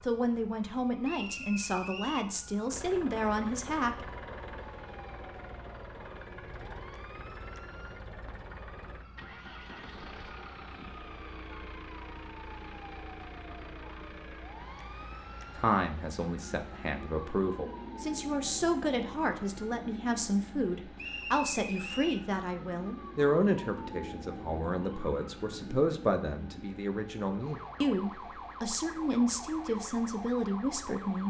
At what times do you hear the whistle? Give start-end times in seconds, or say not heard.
1.0-2.3, 20.9-22.2.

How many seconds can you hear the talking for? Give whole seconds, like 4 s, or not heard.
20 s.